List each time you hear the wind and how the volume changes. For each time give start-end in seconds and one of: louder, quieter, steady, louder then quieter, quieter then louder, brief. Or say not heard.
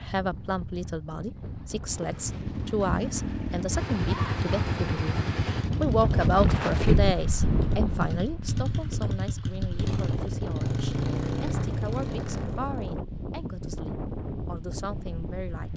0.0-15.7 louder then quieter.